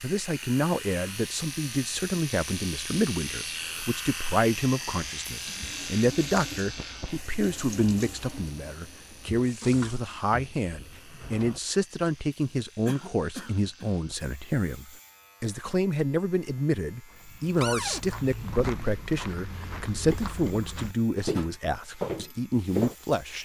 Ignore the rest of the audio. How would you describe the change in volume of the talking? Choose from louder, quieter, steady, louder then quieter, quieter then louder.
steady.